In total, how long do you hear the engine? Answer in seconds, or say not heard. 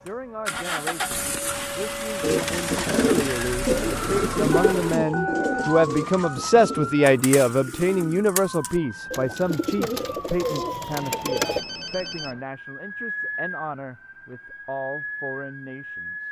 5 s.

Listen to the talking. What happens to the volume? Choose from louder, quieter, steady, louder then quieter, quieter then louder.
louder then quieter.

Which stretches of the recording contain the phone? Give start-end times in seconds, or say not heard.
4.5-6.4, 11.1-12.4.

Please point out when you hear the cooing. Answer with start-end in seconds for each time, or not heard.
2.2-11.6.